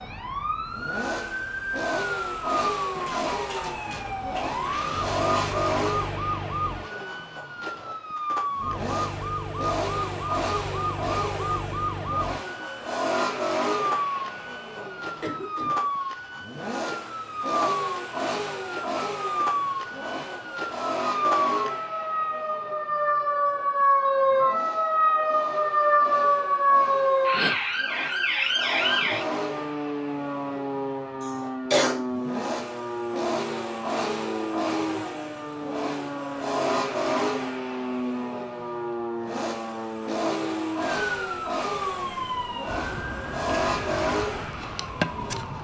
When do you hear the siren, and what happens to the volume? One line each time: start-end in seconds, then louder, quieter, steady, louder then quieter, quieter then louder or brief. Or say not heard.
0.0-45.5 louder then quieter.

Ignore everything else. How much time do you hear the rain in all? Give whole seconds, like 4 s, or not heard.
not heard.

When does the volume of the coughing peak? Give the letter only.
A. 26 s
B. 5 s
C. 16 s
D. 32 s
D.